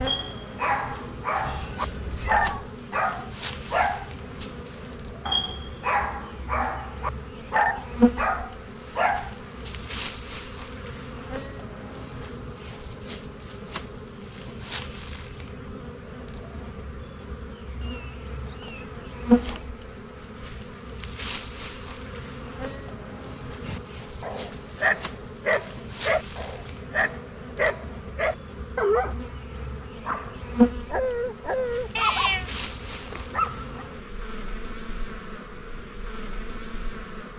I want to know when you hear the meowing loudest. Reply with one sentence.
The loudest moment of the meowing is at 32 seconds.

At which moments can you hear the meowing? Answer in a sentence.
You can hear the meowing from 1.4 to 2.6 s, from 17.8 to 19.6 s and from 31.9 to 32.5 s.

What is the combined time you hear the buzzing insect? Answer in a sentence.
You can hear the buzzing insect for 37 seconds altogether.